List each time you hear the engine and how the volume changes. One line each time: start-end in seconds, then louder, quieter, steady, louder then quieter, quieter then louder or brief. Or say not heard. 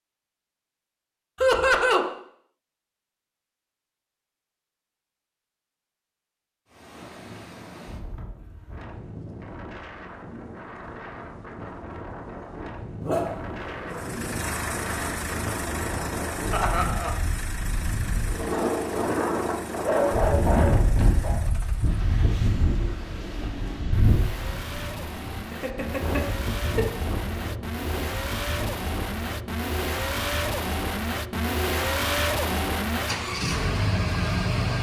13.9-34.7 quieter then louder.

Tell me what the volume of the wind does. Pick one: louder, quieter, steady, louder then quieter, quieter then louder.
louder then quieter.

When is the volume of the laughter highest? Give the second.
2 s.